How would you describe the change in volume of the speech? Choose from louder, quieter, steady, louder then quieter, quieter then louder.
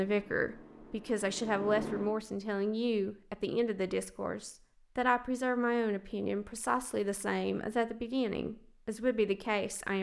steady.